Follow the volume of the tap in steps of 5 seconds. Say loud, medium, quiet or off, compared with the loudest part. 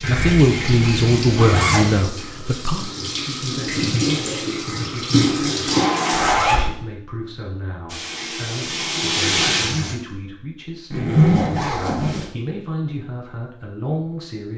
medium, loud, off.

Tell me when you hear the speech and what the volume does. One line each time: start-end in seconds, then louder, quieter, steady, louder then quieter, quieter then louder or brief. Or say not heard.
0.0-5.7 quieter
6.3-14.5 louder.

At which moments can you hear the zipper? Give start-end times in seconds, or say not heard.
0.0-2.0, 6.1-6.7, 10.9-12.3.